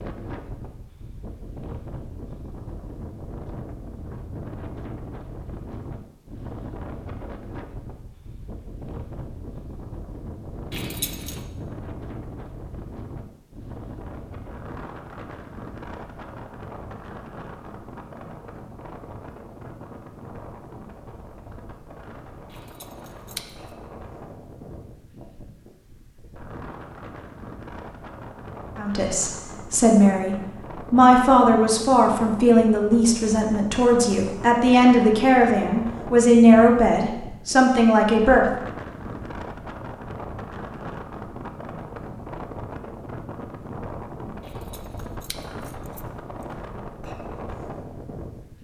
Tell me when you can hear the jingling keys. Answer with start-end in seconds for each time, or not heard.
10.7-11.4, 22.5-23.7, 44.4-46.5.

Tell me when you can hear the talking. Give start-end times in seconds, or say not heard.
28.8-38.5.